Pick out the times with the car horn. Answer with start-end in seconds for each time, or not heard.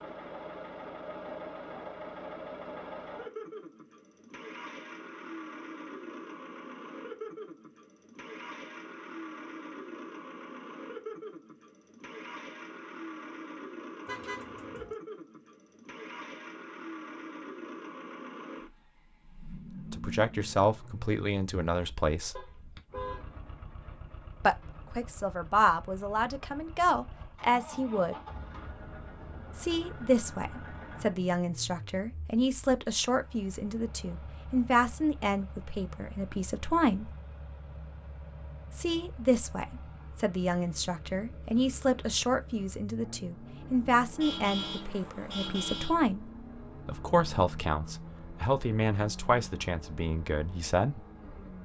14.1-14.9, 22.4-23.3, 44.1-46.0.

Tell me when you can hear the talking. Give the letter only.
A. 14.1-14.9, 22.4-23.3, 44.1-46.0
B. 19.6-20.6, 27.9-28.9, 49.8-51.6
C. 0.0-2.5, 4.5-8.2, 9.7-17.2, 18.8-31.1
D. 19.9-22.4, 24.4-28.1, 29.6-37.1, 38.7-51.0
D.